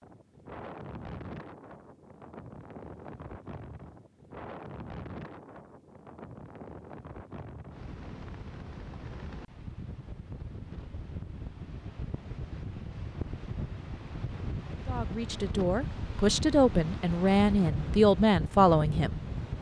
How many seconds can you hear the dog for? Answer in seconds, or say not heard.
not heard.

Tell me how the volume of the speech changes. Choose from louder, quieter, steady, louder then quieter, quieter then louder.
louder.